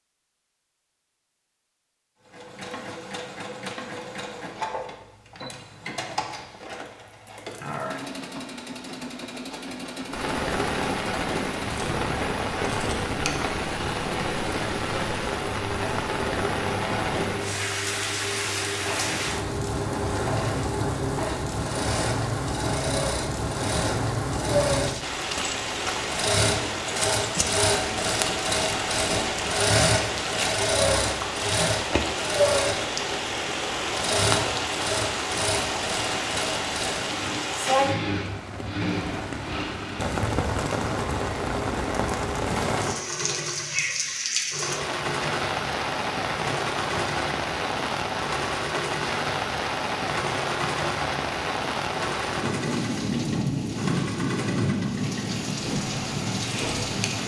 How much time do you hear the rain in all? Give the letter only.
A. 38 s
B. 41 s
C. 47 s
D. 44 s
C.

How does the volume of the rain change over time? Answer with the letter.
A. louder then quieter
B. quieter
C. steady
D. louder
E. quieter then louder
C.